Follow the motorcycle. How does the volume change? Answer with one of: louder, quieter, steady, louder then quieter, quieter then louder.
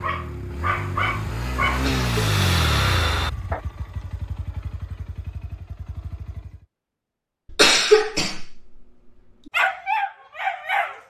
louder then quieter.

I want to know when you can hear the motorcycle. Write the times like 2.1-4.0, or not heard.
0.0-6.7.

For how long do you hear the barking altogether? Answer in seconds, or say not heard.
5 s.